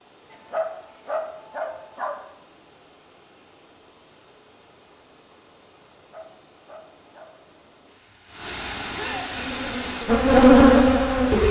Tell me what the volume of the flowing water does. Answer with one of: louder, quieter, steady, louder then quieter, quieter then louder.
louder.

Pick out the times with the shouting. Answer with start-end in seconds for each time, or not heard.
8.9-9.3.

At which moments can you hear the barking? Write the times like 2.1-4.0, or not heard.
0.3-2.1, 6.0-7.3.